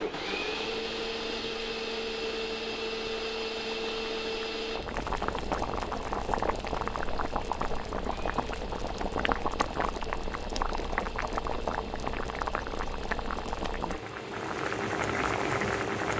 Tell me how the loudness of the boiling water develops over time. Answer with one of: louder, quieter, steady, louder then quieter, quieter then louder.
louder.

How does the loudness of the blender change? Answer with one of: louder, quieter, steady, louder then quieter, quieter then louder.
quieter.